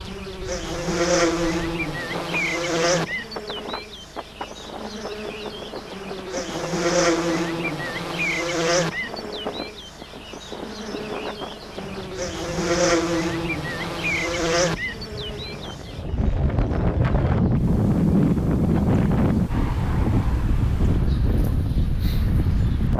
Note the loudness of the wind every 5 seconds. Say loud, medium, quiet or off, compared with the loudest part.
quiet, quiet, quiet, loud, loud.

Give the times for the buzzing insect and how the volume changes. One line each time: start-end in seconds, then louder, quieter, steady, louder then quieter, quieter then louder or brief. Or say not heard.
0.0-22.9 quieter.